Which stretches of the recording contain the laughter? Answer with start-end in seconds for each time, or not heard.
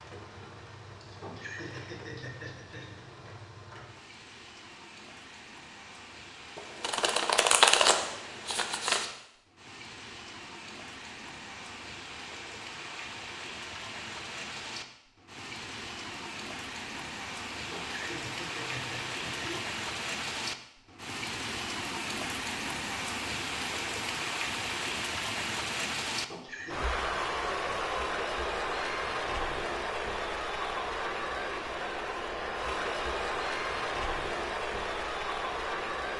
1.0-3.0, 17.5-19.6, 26.1-26.8.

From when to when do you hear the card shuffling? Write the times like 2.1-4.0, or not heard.
6.5-9.1.